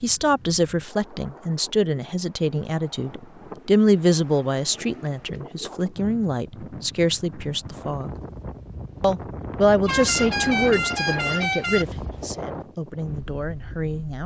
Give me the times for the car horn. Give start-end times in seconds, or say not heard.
9.8-11.8.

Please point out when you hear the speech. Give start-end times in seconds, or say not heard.
0.0-8.2, 9.0-14.2.